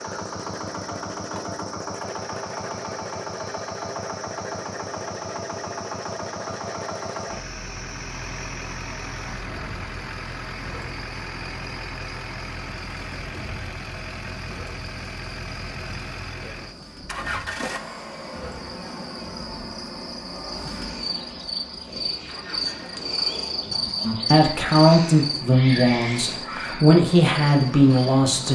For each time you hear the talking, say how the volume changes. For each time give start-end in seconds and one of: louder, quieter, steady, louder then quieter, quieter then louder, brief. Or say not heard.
24.0-28.5 quieter then louder.